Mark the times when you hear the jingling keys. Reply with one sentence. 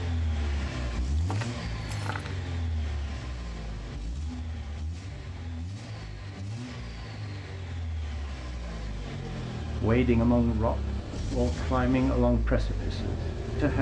You can hear the jingling keys from 1.1 to 2.4 s.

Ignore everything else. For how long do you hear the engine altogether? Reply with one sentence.
You can hear the engine for 14 seconds altogether.